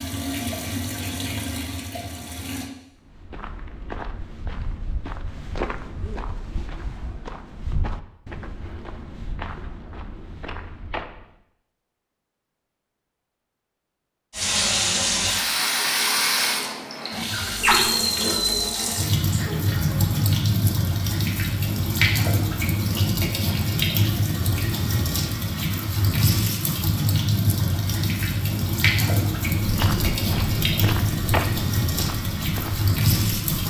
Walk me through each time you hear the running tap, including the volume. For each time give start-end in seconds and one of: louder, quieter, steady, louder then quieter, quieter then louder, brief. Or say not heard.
0.0-2.7 brief
14.3-33.6 steady.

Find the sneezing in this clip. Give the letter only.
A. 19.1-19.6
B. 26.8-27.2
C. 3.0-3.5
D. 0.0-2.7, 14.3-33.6
A.